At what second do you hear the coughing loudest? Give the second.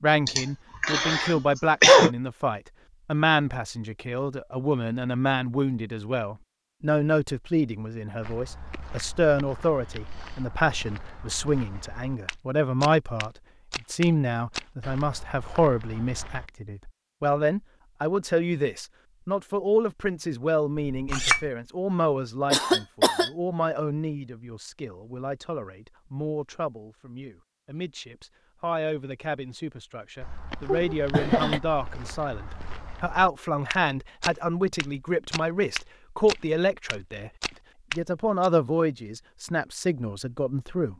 2 s.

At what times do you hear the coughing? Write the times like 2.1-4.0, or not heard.
0.2-2.1, 22.5-23.3, 30.6-31.6.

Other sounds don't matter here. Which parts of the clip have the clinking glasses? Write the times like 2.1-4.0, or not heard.
20.9-21.5.